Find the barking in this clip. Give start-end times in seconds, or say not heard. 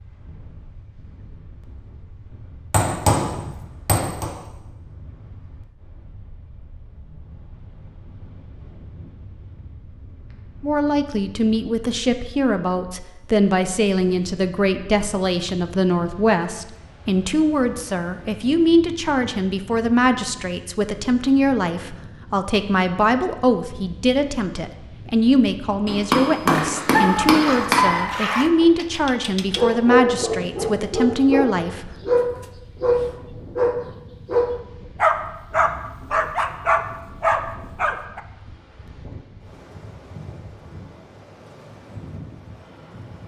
26.4-38.2.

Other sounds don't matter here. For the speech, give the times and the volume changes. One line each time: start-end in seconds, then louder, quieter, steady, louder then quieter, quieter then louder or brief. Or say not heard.
10.6-31.9 steady.